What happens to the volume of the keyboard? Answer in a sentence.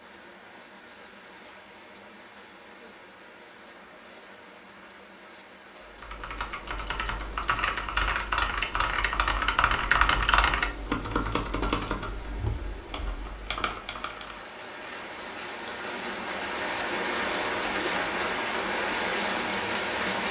The volume of the keyboard goes up, then down.